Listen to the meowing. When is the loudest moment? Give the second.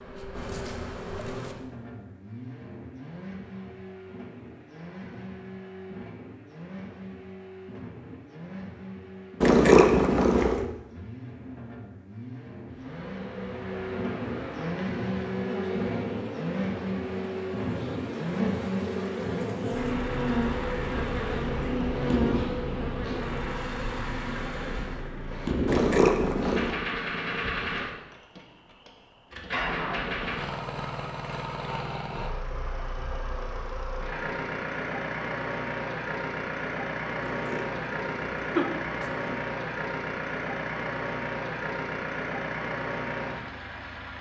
10 s.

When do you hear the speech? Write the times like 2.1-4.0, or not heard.
not heard.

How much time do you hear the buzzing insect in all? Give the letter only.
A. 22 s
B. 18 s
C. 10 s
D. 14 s
D.